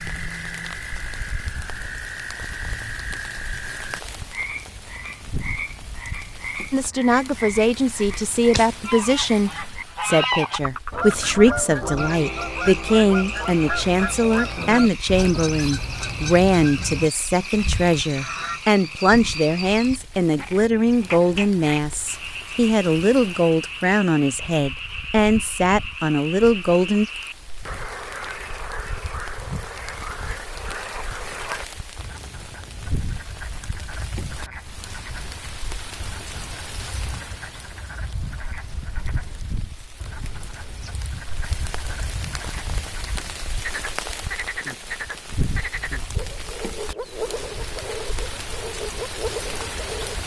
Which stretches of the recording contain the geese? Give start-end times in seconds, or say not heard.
8.8-18.6.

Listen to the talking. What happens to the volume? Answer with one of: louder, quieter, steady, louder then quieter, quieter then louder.
steady.